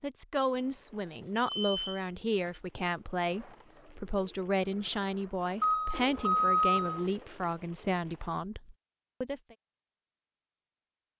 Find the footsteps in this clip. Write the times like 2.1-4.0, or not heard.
not heard.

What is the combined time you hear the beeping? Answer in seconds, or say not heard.
3 s.